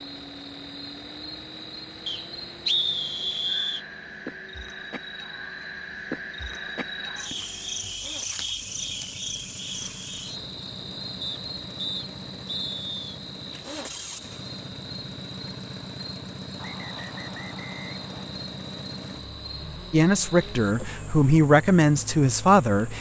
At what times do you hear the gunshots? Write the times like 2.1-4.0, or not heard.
not heard.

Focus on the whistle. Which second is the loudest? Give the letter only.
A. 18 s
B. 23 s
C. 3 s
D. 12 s
C.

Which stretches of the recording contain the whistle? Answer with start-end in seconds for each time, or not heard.
2.0-3.8, 11.2-13.2, 16.6-18.3.